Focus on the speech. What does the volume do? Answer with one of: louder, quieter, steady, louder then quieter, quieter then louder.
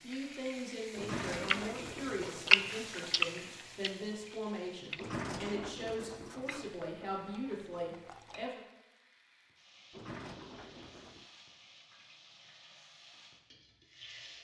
steady.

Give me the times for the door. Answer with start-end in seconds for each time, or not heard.
0.9-2.6, 5.0-6.8, 9.9-11.3.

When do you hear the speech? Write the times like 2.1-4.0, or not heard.
0.0-8.6.